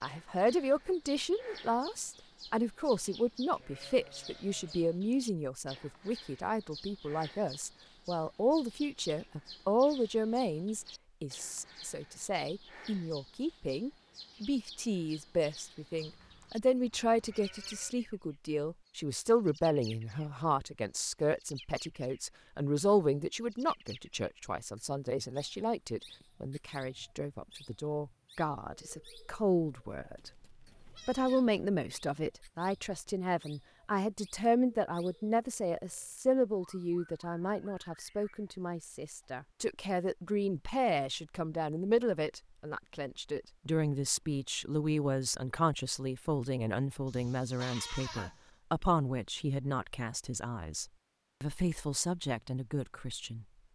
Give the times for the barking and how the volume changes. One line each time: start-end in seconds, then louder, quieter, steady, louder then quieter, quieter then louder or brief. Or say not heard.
not heard.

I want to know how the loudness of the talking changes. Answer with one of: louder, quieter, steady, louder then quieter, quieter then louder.
steady.